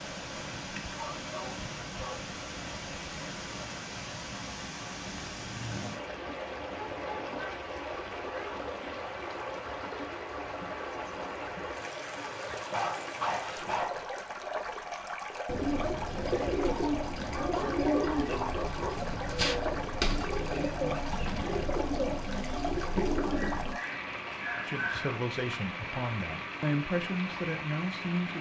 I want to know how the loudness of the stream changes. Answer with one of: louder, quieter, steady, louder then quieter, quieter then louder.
steady.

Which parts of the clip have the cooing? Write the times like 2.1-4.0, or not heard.
15.4-23.8.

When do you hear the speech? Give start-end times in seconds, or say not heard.
24.6-28.3.